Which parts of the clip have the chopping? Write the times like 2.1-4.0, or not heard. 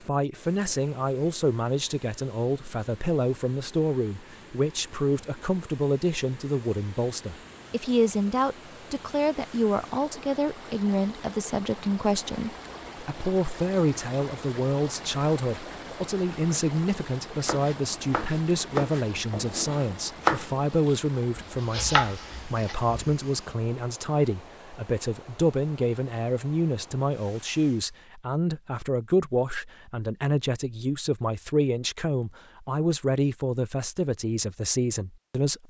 17.4-22.9.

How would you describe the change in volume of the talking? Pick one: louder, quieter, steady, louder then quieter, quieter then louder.
steady.